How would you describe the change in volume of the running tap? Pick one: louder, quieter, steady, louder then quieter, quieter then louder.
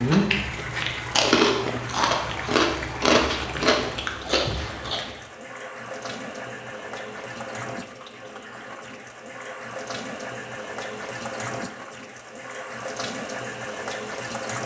steady.